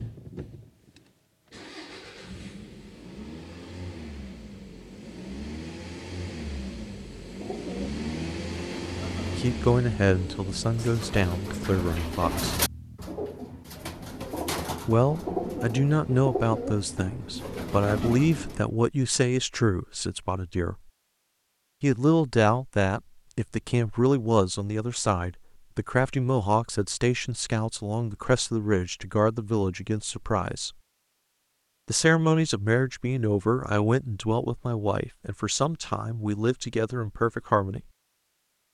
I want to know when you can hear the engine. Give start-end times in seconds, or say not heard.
0.0-13.0.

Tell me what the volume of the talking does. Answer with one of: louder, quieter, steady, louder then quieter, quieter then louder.
steady.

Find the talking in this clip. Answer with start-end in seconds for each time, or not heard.
9.3-12.6, 14.8-20.8, 21.8-30.7, 31.9-37.8.